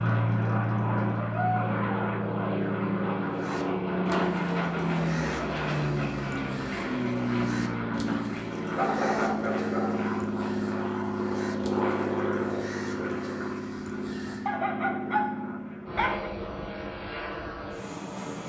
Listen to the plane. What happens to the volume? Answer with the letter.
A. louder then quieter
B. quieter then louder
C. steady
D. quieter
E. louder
D.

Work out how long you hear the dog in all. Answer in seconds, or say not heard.
4 s.